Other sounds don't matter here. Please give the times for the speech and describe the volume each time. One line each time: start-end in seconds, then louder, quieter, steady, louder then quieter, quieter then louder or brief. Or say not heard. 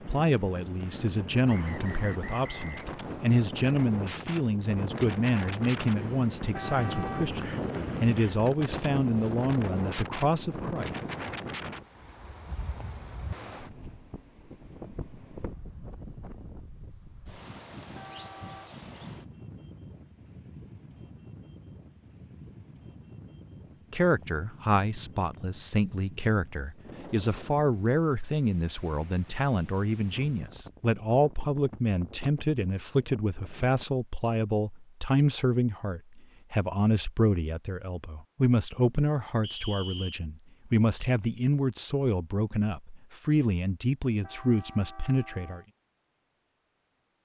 0.1-10.9 steady
23.9-45.6 steady.